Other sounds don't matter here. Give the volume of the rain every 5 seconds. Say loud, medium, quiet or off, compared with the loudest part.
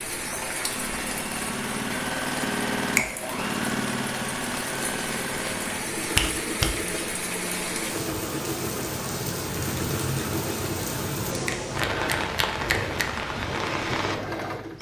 medium, loud, loud.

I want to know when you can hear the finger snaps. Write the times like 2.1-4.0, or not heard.
6.2-6.7, 11.4-13.1.